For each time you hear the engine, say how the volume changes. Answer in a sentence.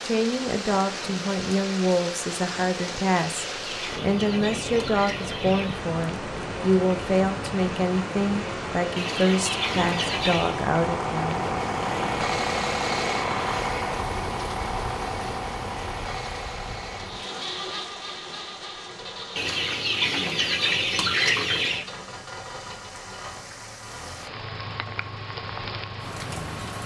The engine can be heard from 0.0 to 26.8 s, getting louder then quieter.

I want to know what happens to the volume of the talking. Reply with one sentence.
The loudness of the talking stays about the same.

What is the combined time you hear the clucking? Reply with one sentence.
The clucking can be heard for 7 seconds in total.